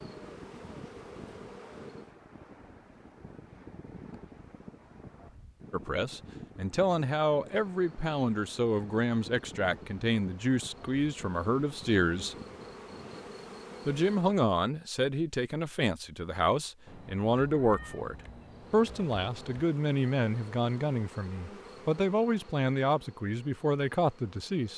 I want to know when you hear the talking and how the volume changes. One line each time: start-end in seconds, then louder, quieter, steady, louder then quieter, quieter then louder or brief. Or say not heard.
5.7-12.3 steady
13.8-24.7 steady.